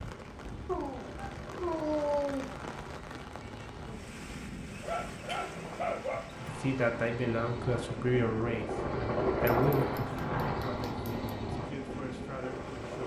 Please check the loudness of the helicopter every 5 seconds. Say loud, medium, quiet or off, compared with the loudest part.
quiet, loud, loud.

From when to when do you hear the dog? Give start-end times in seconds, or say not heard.
0.7-2.6, 4.7-6.6, 9.4-11.1.